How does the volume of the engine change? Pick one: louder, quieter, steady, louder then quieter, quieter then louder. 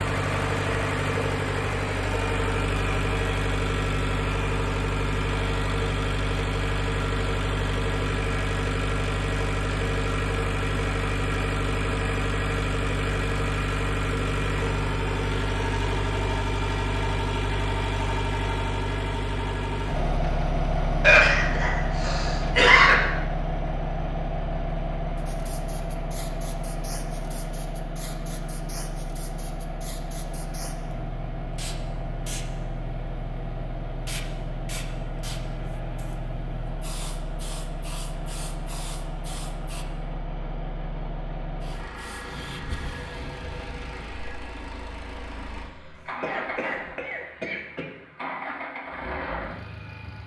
quieter.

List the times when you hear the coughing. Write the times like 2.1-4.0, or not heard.
21.0-22.9, 46.2-47.9.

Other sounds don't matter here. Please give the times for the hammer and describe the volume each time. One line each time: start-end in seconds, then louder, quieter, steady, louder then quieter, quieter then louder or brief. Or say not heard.
not heard.